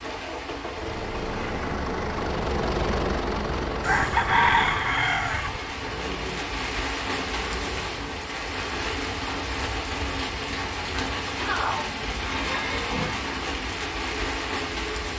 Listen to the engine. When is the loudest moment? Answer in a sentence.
The volume of the engine peaks at 3 seconds.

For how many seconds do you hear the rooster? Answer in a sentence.
The rooster can be heard for 2 seconds in total.